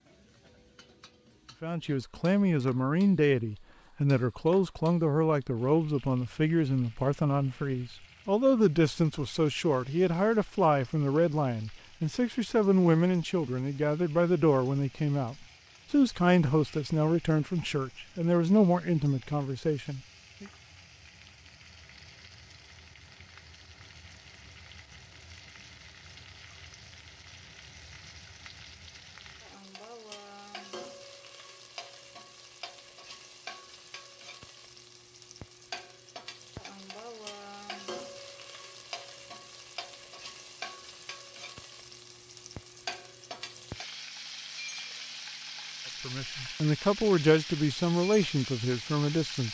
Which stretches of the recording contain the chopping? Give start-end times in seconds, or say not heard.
not heard.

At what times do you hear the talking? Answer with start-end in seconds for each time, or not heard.
1.6-20.4, 46.0-49.4.